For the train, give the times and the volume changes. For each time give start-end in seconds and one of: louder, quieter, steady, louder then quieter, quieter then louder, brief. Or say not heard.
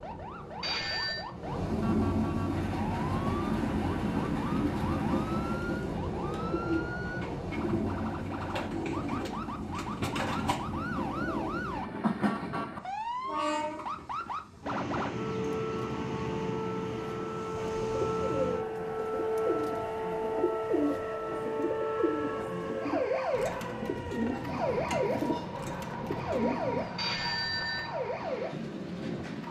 0.0-29.4 quieter.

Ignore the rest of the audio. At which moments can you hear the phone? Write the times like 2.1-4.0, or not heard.
0.6-1.2, 26.9-27.9.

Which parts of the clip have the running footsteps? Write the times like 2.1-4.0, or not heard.
not heard.